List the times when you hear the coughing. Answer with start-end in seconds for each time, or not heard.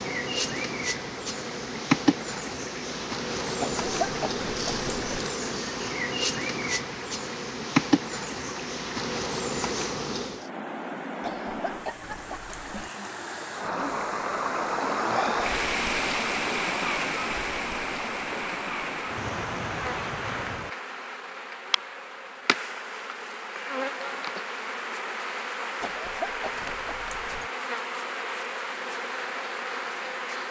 3.6-5.2, 11.2-12.9, 25.8-27.5.